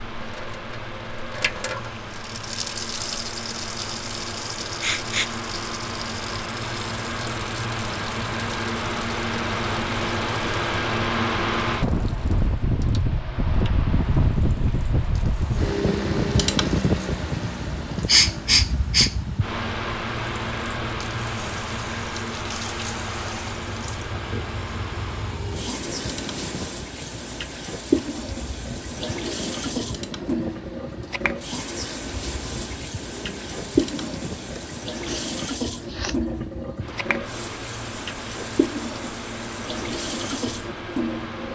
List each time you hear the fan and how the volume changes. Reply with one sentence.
You can hear the fan from 0.0 to 41.5 s, getting louder then quieter.